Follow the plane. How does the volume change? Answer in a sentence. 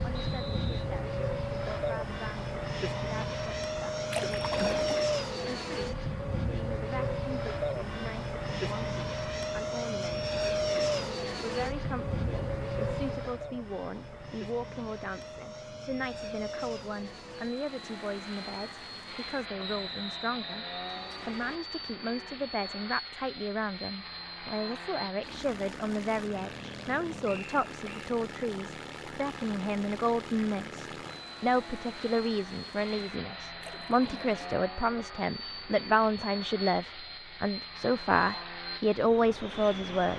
The volume of the plane goes down.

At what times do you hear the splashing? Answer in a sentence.
The splashing can be heard from 4.1 to 5.0 s and from 33.6 to 34.5 s.